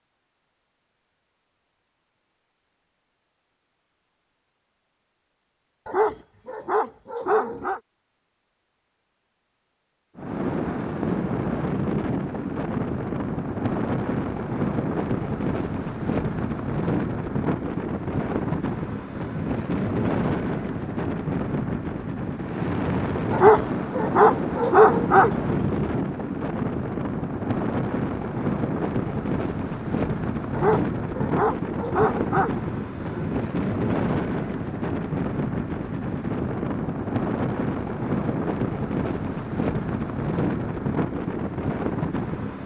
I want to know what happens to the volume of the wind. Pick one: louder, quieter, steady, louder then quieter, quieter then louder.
steady.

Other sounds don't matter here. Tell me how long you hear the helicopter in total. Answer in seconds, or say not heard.
not heard.